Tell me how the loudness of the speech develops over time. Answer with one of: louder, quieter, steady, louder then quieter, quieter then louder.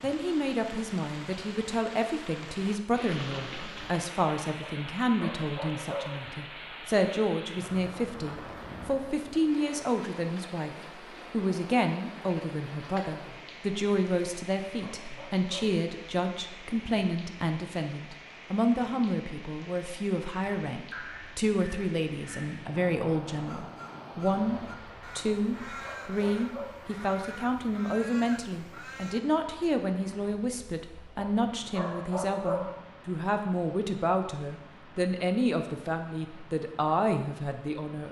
steady.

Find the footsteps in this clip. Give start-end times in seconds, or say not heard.
not heard.